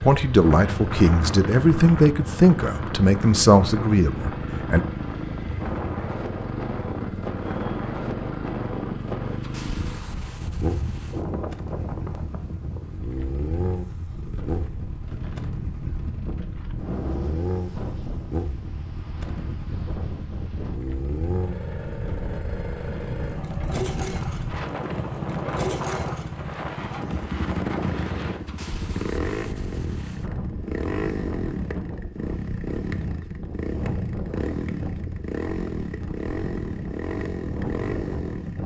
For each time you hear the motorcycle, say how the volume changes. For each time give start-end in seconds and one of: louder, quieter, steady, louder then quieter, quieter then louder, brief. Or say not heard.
0.0-38.6 steady.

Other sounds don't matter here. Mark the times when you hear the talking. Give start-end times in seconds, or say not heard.
0.0-4.8.